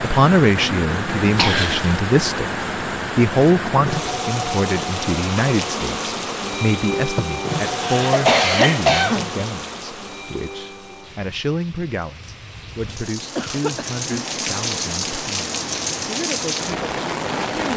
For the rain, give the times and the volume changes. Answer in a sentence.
You can hear the rain from 0.0 to 17.7 s, getting quieter then louder.